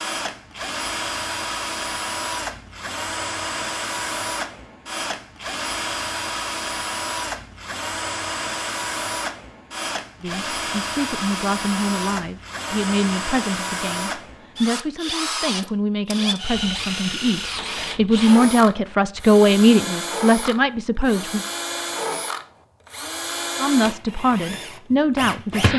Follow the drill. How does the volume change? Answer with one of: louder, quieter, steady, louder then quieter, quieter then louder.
steady.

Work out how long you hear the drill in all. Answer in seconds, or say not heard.
26 s.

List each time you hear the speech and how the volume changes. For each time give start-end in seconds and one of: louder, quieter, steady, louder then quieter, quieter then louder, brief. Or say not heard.
10.2-21.4 louder
23.6-25.7 brief.